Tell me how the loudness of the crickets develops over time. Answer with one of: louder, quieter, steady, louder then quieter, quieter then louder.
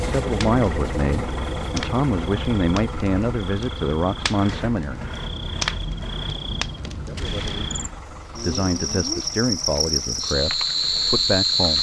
louder.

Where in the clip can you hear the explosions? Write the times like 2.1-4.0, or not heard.
7.2-8.1.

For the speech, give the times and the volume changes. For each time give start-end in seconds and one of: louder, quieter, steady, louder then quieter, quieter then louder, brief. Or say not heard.
0.0-5.0 steady
7.0-11.7 louder then quieter.